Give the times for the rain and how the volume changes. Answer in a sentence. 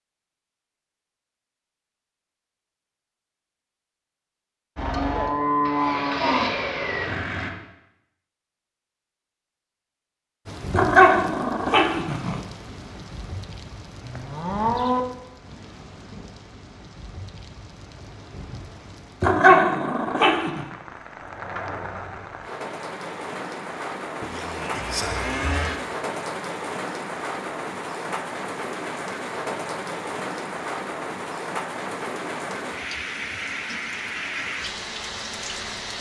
You can hear the rain from 10.4 to 35.9 s, getting louder.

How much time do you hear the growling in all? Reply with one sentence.
The growling can be heard for 3 seconds in total.